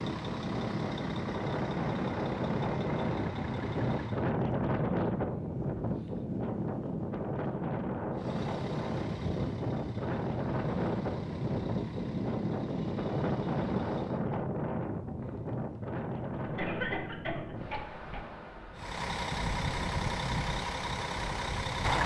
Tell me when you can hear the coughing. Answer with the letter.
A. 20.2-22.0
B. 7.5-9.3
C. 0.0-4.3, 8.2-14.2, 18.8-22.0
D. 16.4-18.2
D.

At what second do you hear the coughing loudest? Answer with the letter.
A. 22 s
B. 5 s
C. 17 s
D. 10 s
C.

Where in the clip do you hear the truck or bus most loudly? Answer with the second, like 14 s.
22 s.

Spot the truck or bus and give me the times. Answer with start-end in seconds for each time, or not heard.
0.0-4.3, 8.2-14.2, 18.8-22.0.